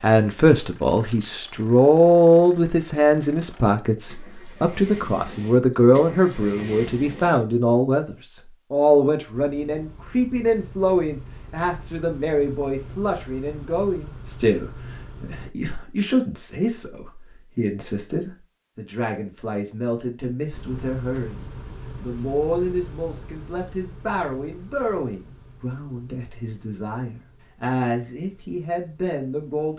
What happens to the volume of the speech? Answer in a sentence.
The loudness of the speech goes down.